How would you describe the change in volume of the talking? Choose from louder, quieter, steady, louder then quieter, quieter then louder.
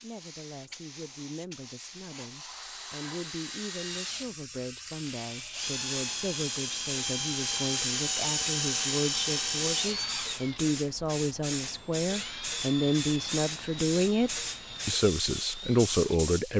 louder.